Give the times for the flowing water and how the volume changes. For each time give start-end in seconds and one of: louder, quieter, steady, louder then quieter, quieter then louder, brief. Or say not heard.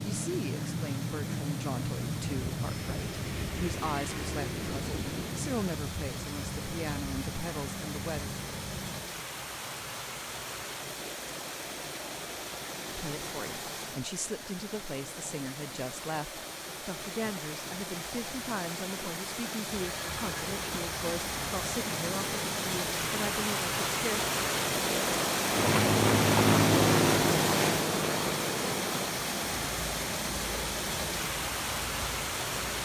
0.0-32.8 louder.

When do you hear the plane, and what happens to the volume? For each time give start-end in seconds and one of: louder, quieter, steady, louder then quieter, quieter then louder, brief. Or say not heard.
0.0-9.1 quieter
19.9-32.8 louder then quieter.